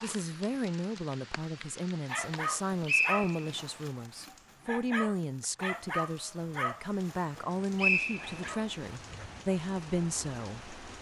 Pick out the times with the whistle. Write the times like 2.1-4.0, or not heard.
2.5-3.6, 7.3-8.6.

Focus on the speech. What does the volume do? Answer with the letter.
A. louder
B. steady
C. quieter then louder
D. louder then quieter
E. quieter
B.